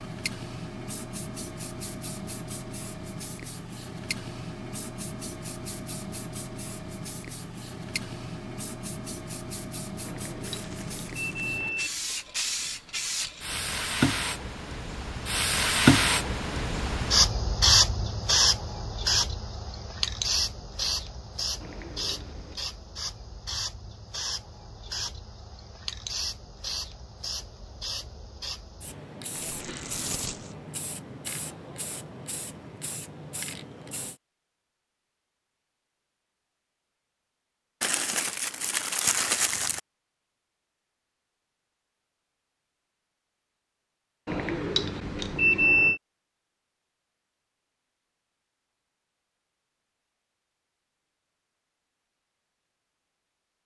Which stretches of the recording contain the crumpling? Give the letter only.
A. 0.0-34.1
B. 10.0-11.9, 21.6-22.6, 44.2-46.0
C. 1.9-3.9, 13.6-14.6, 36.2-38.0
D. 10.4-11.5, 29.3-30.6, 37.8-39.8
D.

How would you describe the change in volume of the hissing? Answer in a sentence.
The loudness of the hissing goes up, then down.